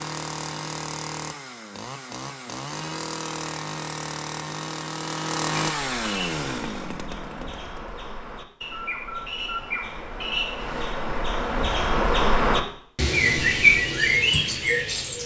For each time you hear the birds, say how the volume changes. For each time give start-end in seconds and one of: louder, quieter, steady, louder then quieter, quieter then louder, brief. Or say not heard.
5.8-15.2 louder.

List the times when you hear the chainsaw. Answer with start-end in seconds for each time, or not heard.
0.0-7.8.